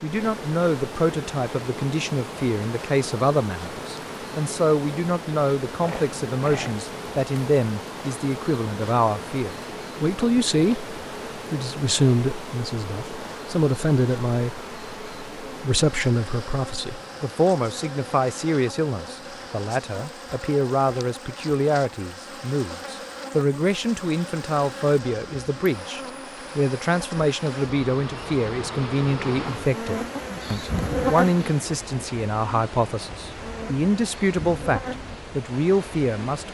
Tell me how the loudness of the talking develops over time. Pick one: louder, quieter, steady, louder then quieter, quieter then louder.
steady.